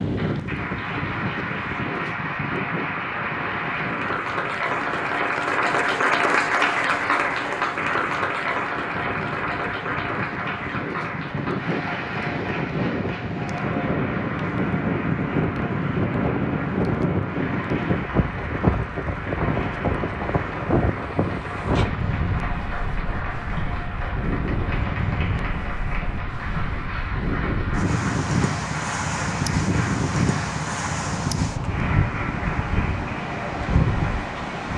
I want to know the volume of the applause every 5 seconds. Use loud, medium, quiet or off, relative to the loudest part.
medium, loud, medium, medium, medium, medium, medium.